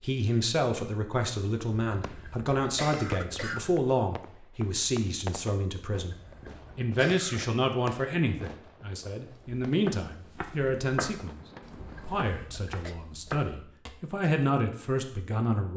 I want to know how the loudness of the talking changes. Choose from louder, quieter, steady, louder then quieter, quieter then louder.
steady.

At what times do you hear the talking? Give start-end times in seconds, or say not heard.
0.0-6.2, 6.8-11.4, 12.0-15.7.